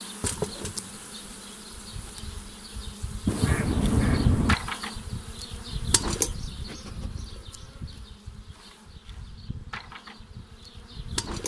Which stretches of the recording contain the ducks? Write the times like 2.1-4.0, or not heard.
3.2-4.5.